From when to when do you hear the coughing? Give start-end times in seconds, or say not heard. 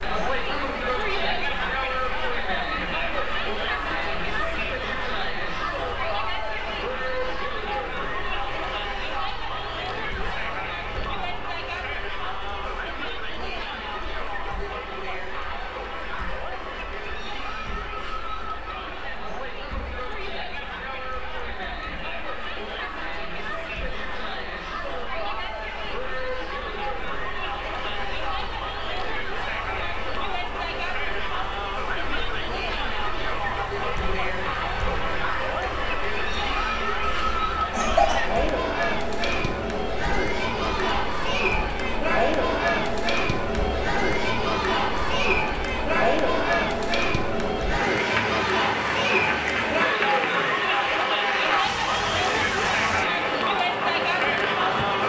37.0-38.2.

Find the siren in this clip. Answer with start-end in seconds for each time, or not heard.
not heard.